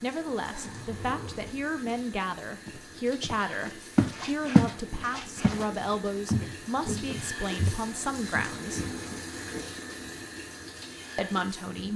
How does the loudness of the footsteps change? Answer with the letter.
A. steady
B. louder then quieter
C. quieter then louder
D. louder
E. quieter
B.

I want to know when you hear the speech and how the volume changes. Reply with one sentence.
The speech can be heard from 0.0 to 8.8 s, at a steady volume; and briefly from 11.2 to 11.9 s.